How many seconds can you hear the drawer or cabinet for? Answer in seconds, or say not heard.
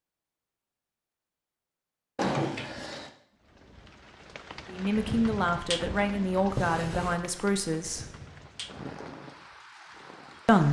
2 s.